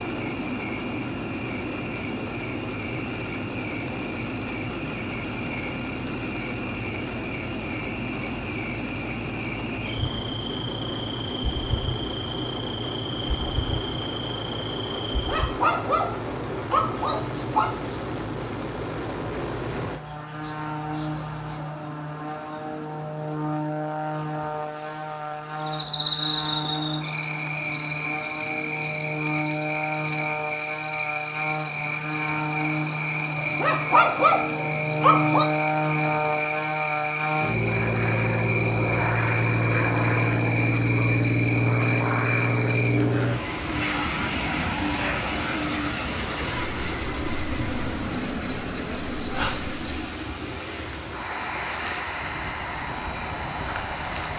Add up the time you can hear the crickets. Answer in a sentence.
The crickets can be heard for 54 seconds in total.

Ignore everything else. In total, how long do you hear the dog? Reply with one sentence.
The dog can be heard for 5 seconds in total.